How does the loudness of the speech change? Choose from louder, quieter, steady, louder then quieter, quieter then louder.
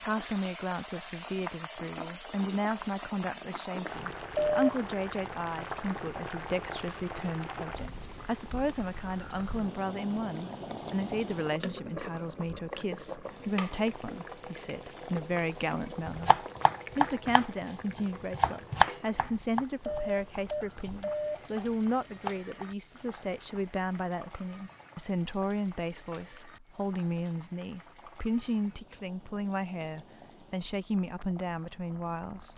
steady.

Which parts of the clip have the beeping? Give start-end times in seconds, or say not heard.
4.3-4.8, 19.8-21.4.